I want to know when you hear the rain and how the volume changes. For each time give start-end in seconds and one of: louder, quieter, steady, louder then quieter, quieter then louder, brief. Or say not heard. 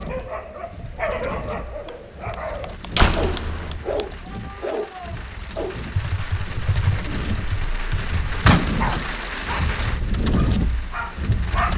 0.0-11.7 louder.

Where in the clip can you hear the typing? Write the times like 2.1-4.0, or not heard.
1.9-4.0, 6.0-8.5.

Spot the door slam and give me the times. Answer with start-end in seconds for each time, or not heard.
3.0-3.8, 8.4-9.1.